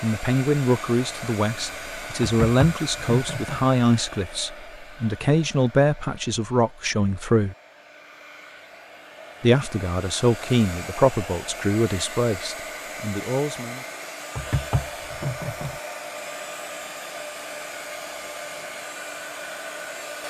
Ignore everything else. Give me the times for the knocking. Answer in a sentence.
The knocking can be heard from 2.2 to 3.6 s and from 14.3 to 15.8 s.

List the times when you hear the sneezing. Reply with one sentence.
The sneezing can't be heard in this clip.